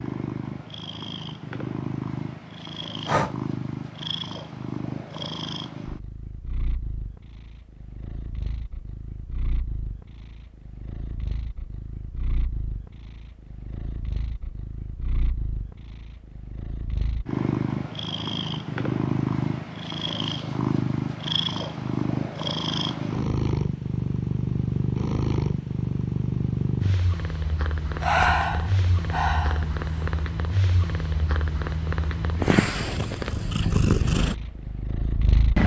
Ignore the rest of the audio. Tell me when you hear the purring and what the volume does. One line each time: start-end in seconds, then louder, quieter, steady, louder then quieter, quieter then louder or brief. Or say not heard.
0.0-35.6 quieter then louder.